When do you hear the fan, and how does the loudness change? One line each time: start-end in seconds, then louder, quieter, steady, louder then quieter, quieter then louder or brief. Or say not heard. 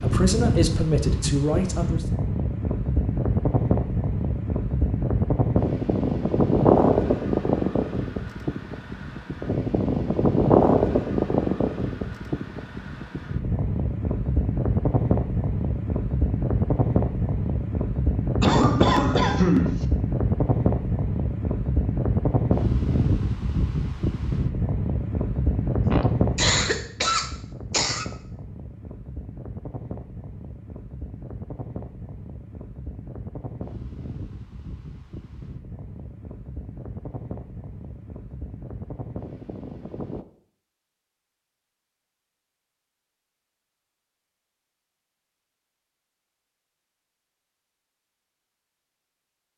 0.0-40.2 quieter.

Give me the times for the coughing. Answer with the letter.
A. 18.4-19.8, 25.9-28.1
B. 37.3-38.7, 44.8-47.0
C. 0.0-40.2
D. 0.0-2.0
A.